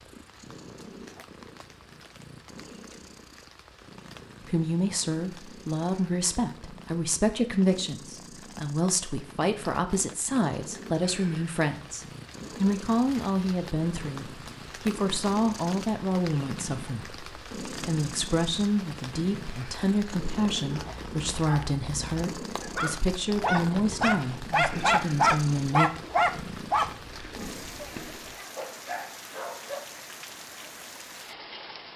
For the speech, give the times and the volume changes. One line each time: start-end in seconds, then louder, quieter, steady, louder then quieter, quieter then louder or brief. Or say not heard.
4.5-25.9 steady.